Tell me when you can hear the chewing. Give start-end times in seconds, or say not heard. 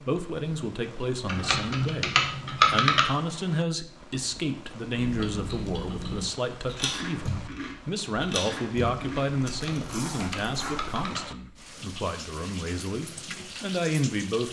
5.0-10.9.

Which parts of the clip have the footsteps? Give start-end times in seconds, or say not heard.
not heard.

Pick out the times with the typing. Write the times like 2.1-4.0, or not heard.
1.2-3.0, 9.4-11.2.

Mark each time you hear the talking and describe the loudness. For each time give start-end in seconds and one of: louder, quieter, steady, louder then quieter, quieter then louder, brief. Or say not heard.
0.0-14.4 steady.